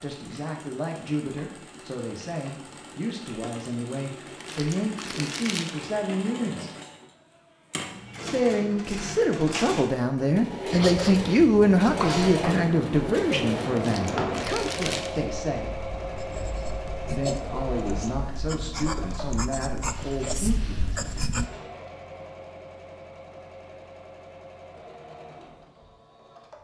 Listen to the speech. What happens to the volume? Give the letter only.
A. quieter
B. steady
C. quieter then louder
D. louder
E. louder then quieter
E.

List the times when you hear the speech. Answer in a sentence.
You can hear the speech from 0.0 to 6.7 s, from 8.3 to 15.8 s and from 17.1 to 21.2 s.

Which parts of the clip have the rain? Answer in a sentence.
You can't hear the rain here.